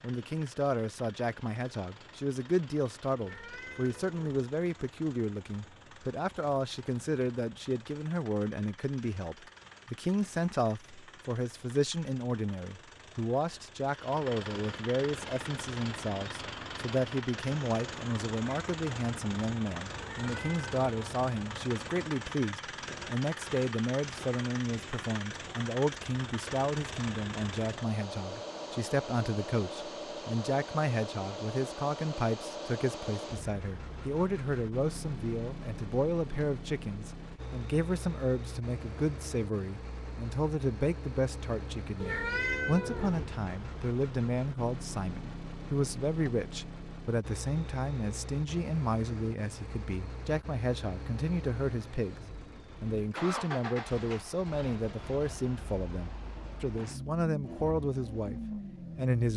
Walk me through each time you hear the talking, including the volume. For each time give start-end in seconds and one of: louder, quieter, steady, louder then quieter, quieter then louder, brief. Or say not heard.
0.0-59.3 steady.